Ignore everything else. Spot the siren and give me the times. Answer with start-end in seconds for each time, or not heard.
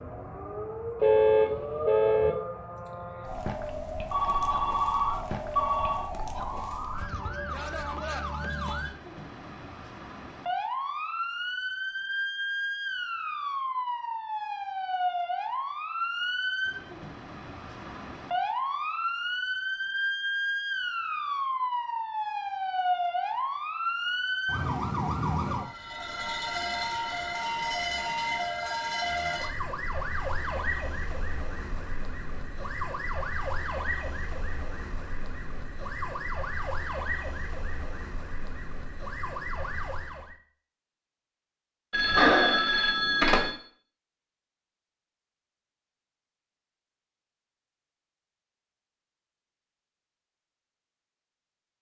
0.0-40.4.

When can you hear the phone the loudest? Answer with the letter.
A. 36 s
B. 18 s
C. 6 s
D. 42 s
D.